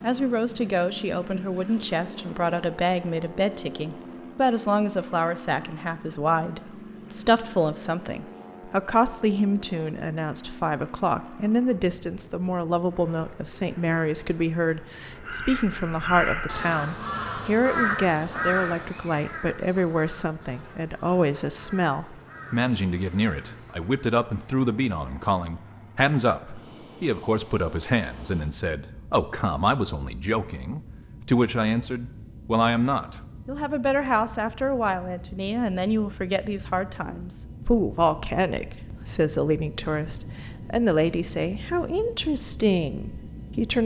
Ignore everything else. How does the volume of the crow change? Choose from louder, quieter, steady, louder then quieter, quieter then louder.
quieter.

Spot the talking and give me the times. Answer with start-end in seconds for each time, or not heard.
0.0-43.8.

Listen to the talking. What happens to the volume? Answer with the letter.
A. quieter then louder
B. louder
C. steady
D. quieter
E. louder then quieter
C.